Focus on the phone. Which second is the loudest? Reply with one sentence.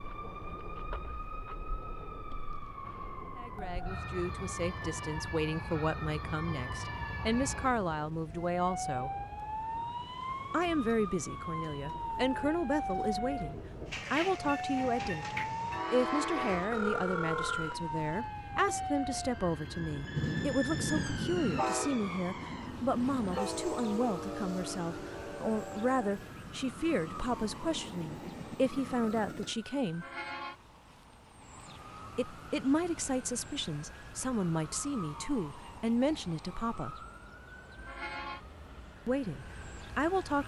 The loudest moment of the phone is at 17 seconds.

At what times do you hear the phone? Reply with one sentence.
The phone can be heard from 16.7 to 18.2 s.